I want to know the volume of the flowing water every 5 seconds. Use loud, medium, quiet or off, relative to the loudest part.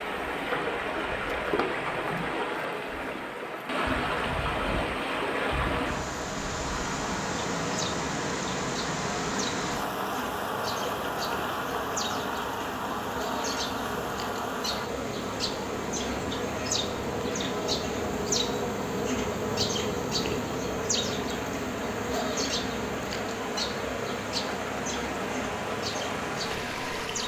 loud, loud, loud, medium, medium, loud.